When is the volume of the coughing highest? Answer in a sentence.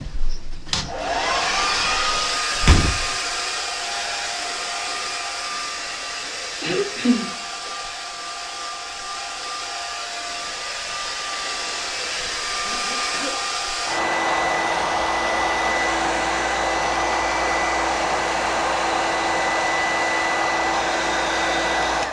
The loudest moment of the coughing is at 7 seconds.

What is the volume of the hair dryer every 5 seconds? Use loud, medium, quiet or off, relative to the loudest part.
loud, medium, loud, loud, loud.